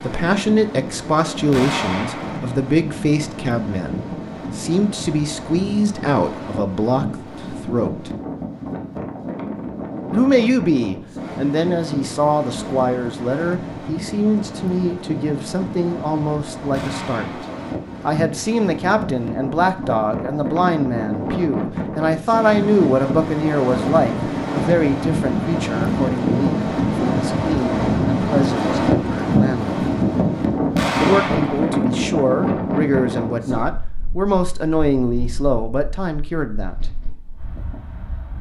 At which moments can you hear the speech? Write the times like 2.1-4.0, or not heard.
0.0-8.1, 10.1-17.2, 18.1-29.8, 31.0-36.8.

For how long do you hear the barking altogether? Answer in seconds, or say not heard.
not heard.